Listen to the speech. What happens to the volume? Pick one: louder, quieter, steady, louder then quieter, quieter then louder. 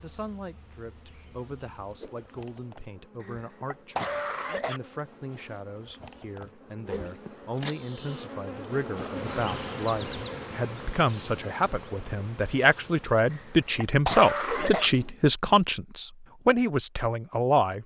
louder.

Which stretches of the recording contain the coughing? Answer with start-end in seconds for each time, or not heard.
3.2-4.8, 13.3-14.9.